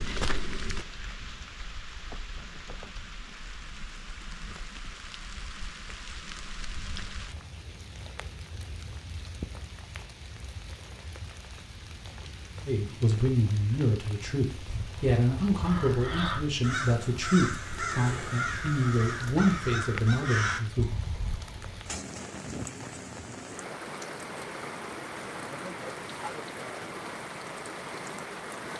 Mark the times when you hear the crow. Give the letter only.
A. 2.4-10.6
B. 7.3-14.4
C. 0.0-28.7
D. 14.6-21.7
D.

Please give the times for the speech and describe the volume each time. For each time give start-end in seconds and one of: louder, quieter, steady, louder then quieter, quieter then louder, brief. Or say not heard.
12.7-20.9 steady.